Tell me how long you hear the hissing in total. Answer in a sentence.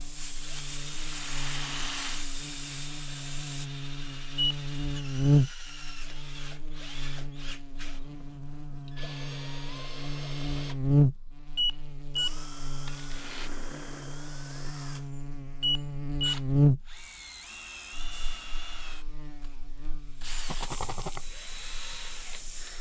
You can hear the hissing for 8 seconds altogether.